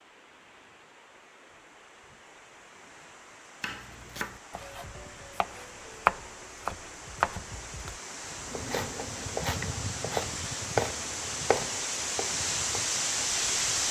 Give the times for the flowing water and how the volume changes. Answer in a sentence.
You can hear the flowing water from 0.0 to 13.8 s, getting louder.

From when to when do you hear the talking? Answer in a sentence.
The talking can't be heard in this clip.